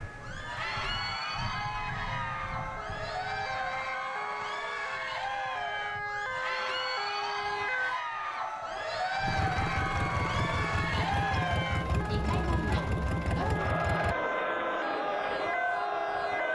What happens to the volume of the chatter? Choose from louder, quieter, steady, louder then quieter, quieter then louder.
steady.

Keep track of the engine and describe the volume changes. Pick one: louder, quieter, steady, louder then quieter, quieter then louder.
steady.